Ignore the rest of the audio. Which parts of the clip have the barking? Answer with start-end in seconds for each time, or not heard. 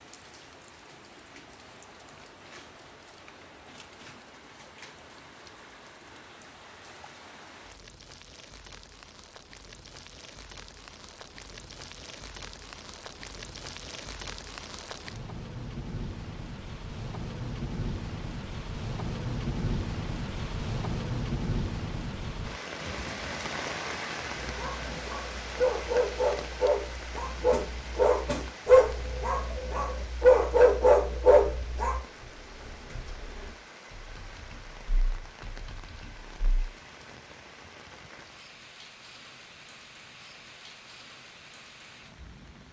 24.4-31.9.